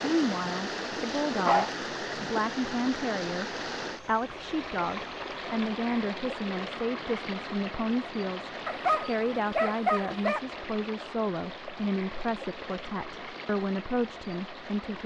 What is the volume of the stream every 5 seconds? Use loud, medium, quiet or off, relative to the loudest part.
loud, loud, medium.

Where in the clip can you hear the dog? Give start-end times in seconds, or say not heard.
1.4-2.3, 8.7-10.4.